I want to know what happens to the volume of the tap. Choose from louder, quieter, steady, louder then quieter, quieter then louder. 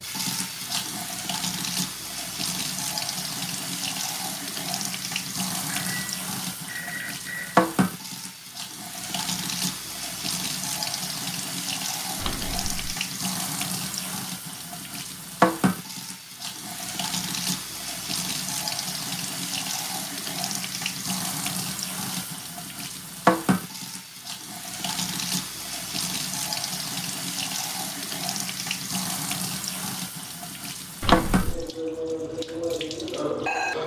steady.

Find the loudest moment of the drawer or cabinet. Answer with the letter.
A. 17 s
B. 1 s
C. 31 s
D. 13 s
C.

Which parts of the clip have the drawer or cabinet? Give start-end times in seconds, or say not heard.
12.2-12.9, 31.0-31.7.